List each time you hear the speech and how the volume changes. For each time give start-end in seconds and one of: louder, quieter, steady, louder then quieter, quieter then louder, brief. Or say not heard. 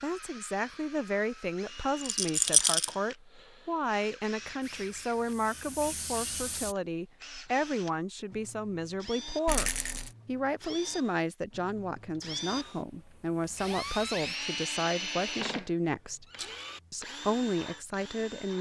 0.0-16.2 steady
16.9-18.5 brief.